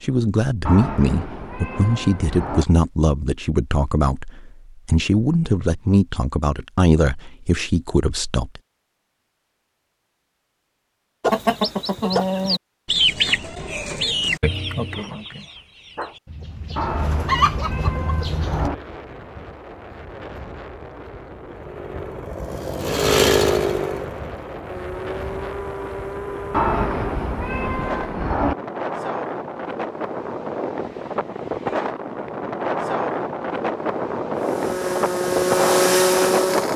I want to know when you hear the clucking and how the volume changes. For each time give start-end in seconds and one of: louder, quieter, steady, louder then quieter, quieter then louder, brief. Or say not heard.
11.2-18.7 quieter then louder.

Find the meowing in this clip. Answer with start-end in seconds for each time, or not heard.
0.7-2.6, 16.8-18.8, 26.5-28.6.